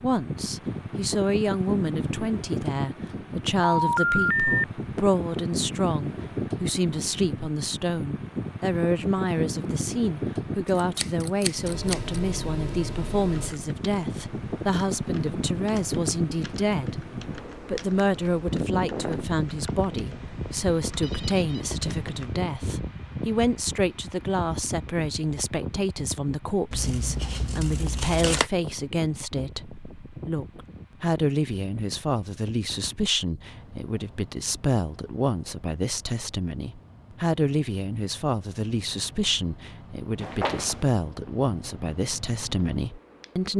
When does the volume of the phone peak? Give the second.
4 s.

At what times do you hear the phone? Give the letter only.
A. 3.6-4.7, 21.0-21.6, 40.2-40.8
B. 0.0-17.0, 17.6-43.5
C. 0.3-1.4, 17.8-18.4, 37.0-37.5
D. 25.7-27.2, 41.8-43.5
A.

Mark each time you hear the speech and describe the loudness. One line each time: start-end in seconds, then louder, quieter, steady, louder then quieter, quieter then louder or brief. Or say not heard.
0.0-17.0 steady
17.6-43.5 steady.